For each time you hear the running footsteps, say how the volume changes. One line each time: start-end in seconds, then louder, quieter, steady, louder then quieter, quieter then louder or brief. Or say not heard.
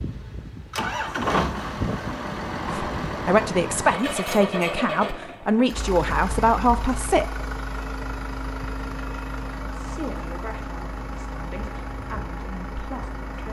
not heard.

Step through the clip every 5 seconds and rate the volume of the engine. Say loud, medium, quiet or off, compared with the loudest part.
loud, medium, medium.